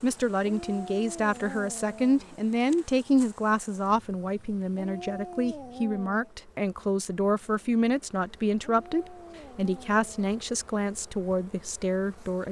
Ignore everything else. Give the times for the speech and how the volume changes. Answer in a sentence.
You can hear the speech from 0.0 to 12.4 s, at a steady volume.